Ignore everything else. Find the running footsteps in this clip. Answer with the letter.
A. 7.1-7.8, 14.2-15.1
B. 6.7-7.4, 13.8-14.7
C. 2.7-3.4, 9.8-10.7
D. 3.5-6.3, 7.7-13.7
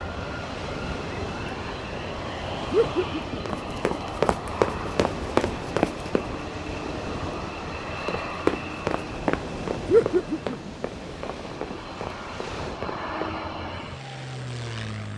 D.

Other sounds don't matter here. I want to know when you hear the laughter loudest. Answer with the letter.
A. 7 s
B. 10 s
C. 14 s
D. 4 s
B.